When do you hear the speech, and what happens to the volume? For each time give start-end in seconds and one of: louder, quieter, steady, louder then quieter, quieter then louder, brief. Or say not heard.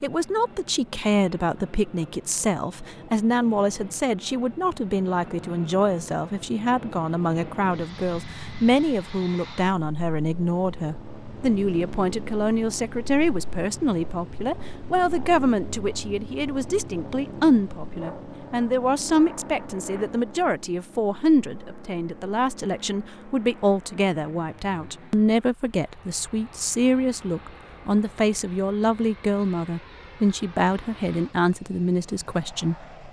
0.0-32.9 steady.